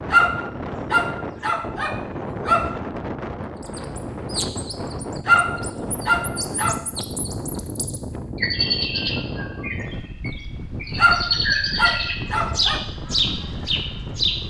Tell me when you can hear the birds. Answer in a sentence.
You can hear the birds from 3.6 to 14.4 s.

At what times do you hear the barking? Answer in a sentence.
The barking can be heard from 0.1 to 2.8 s, from 5.2 to 6.8 s and from 10.9 to 12.8 s.